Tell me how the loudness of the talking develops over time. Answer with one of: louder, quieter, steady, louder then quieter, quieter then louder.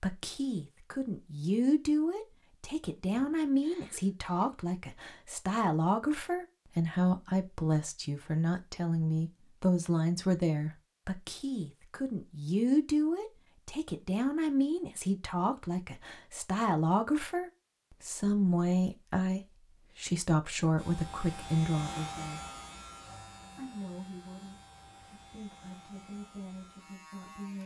quieter.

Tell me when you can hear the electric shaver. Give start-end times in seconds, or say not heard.
20.8-27.6.